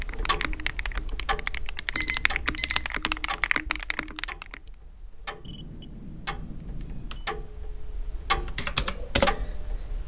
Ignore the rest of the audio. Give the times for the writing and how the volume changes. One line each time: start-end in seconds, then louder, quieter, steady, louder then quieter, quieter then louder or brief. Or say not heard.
not heard.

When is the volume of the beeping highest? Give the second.
2 s.